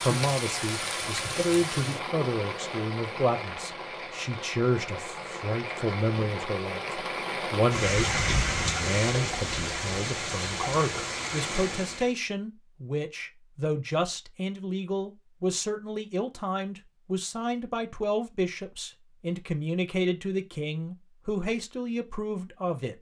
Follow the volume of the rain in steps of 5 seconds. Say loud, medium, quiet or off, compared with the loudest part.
loud, loud, loud, off, off.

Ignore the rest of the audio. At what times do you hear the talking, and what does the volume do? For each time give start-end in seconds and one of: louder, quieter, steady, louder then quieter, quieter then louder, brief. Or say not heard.
0.0-22.9 steady.